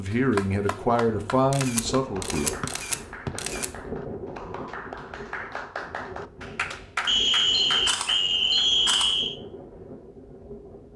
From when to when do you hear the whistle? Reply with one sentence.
The whistle can be heard from 2.6 to 3.3 s and from 7.0 to 9.3 s.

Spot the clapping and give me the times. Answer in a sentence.
The clapping can be heard from 0.1 to 8.7 s.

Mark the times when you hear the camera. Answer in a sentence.
You can hear the camera from 1.5 to 3.6 s and from 7.5 to 9.2 s.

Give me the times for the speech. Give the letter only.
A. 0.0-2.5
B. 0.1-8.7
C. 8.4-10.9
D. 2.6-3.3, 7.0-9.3
A.